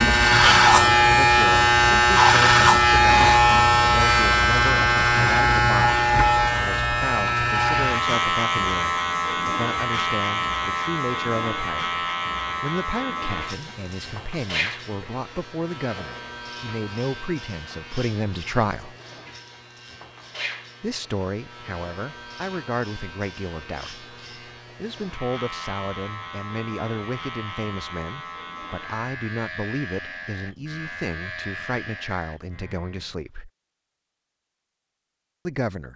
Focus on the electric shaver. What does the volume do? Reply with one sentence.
The volume of the electric shaver goes down.